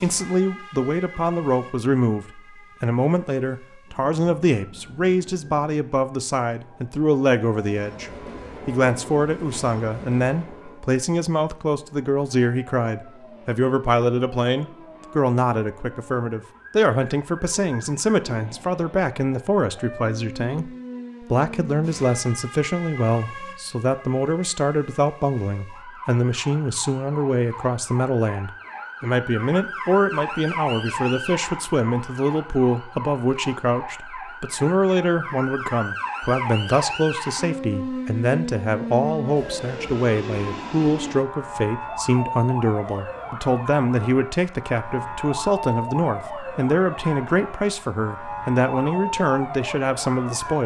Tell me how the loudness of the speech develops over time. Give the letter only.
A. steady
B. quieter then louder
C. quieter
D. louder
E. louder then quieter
A.